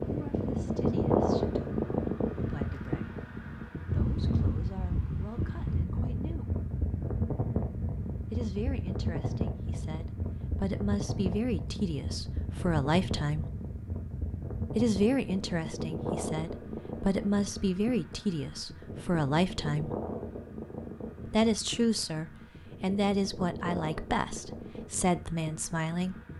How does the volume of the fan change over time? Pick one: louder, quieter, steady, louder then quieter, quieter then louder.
quieter.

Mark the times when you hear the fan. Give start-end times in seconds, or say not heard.
0.0-26.3.